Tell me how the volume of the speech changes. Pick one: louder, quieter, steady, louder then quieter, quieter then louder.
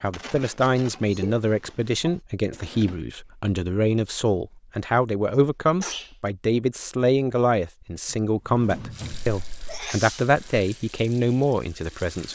steady.